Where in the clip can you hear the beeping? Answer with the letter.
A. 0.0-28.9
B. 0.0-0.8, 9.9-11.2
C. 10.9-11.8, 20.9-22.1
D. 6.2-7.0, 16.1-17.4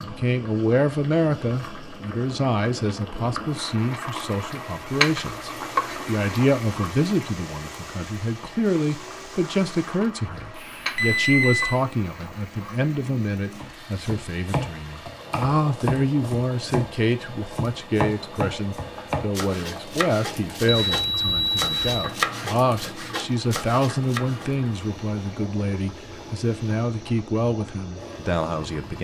C.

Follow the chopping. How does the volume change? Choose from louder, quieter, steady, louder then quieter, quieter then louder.
steady.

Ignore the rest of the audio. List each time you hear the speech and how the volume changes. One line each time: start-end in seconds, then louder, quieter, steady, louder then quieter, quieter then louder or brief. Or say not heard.
0.0-28.9 steady.